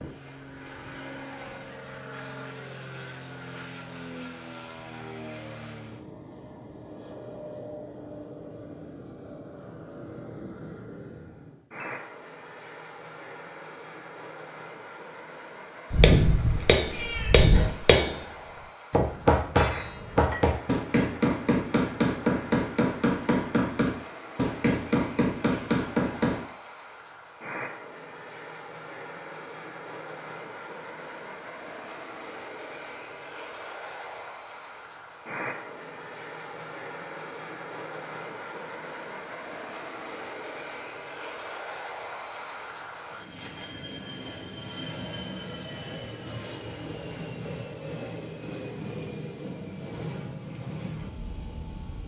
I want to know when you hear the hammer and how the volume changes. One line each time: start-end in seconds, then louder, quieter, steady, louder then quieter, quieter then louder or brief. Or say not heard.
16.0-26.4 steady.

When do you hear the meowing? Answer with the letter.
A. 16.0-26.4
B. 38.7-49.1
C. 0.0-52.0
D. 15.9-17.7
D.